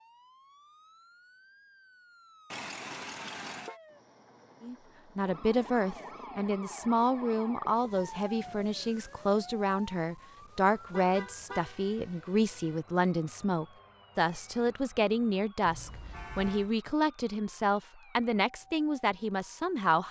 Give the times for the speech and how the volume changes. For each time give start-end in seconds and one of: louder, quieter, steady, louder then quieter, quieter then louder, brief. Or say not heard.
4.6-20.0 steady.